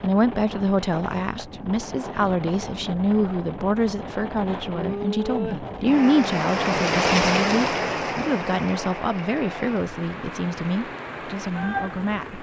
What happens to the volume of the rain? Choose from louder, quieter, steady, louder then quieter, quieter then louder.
louder then quieter.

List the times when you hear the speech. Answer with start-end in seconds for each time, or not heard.
0.0-12.3.